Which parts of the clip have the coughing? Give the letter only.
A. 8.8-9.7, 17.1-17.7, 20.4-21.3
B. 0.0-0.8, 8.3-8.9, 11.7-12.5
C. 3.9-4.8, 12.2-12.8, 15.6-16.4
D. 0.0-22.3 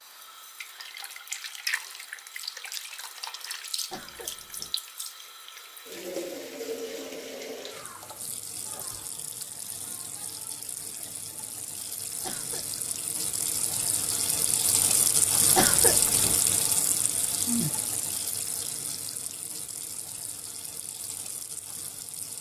C.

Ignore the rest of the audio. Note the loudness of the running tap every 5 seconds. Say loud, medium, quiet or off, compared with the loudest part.
medium, medium, medium, loud, quiet.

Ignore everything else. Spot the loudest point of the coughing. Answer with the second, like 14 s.
16 s.